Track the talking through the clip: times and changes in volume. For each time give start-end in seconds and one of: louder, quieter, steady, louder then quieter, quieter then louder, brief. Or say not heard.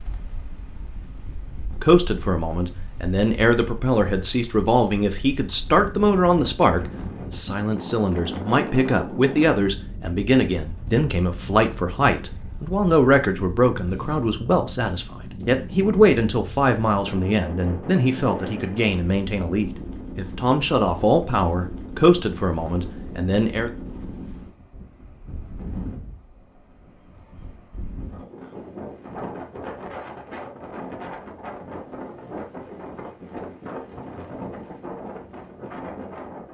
1.8-23.7 steady.